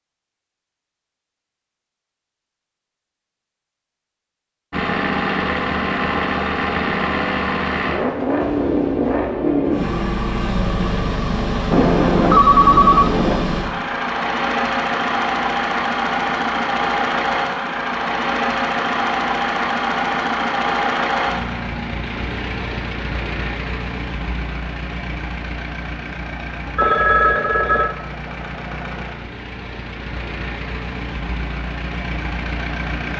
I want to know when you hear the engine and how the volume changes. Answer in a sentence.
You can hear the engine from 4.7 to 33.1 s, getting quieter.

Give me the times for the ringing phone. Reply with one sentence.
The ringing phone can be heard from 11.7 to 13.4 s and from 26.8 to 27.9 s.